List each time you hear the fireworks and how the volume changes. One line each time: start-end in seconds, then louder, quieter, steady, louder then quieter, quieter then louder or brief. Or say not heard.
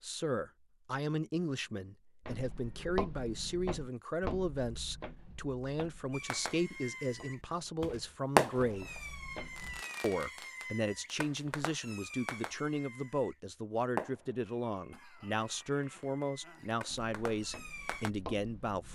6.1-13.3 louder then quieter
13.9-18.1 louder.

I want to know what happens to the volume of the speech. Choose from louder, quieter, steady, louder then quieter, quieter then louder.
steady.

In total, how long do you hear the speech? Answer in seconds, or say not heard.
18 s.